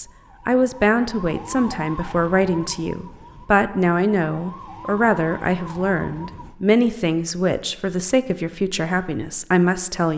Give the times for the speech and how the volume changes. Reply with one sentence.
The speech can be heard from 0.0 to 10.1 s, at a steady volume.